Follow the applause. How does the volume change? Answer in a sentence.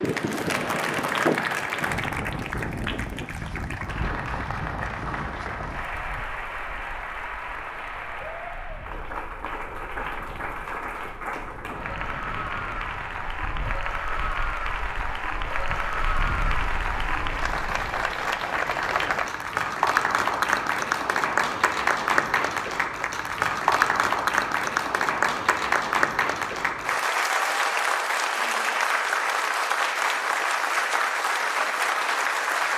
The volume of the applause goes up.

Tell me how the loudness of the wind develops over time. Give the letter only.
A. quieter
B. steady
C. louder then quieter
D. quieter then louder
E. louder
D.